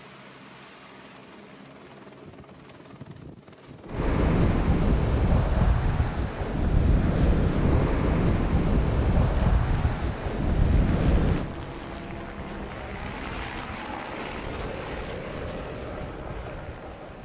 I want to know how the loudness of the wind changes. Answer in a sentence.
The loudness of the wind goes down.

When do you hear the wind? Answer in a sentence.
You can hear the wind from 3.9 to 17.1 s.